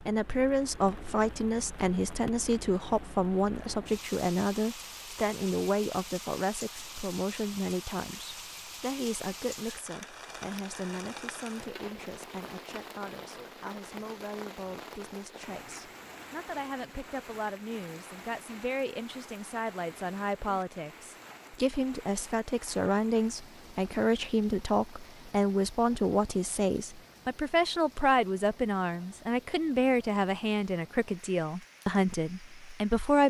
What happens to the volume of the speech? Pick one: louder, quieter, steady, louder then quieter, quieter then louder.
quieter then louder.